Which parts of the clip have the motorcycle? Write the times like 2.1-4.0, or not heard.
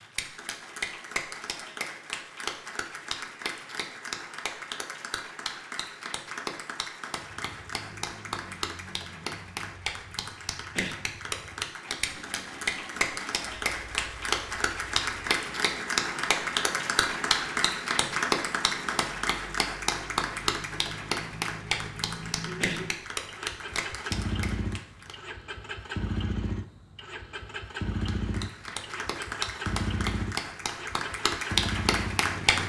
7.2-32.6.